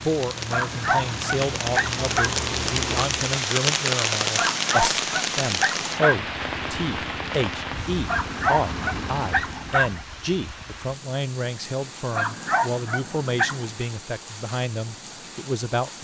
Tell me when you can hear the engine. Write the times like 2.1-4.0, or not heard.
0.0-3.4, 6.1-9.7.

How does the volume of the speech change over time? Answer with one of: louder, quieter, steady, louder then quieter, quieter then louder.
steady.